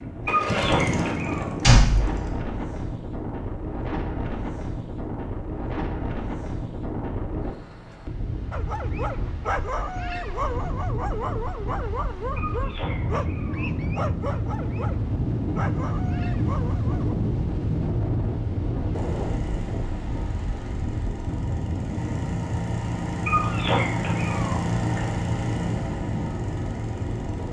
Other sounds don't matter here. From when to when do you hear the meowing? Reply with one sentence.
The meowing can be heard from 0.2 to 1.5 s, from 12.3 to 13.7 s and from 23.2 to 25.1 s.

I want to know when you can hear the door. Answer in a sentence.
You can hear the door from 1.6 to 2.3 s.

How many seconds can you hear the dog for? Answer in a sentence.
The dog can be heard for 9 seconds in total.